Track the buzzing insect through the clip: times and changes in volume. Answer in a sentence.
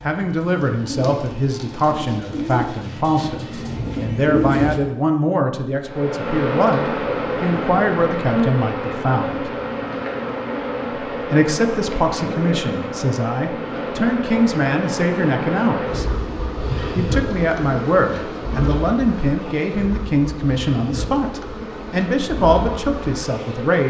The buzzing insect can be heard from 5.8 to 23.8 s, getting quieter.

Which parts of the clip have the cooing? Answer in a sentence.
The cooing can be heard from 0.0 to 4.9 s.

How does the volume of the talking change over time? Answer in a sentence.
The volume of the talking stays about the same.